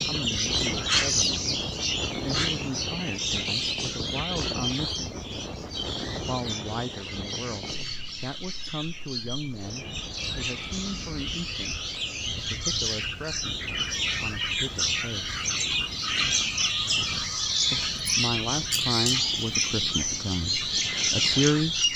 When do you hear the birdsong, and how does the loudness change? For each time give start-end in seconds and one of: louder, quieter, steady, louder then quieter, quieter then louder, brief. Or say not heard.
0.0-21.9 quieter then louder.